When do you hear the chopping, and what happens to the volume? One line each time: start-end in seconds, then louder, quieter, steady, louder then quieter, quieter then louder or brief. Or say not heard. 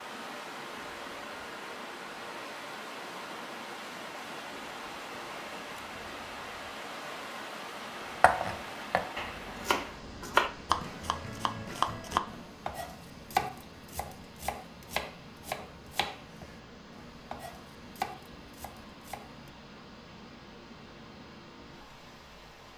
8.2-19.5 quieter.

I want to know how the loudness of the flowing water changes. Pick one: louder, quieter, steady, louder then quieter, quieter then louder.
quieter.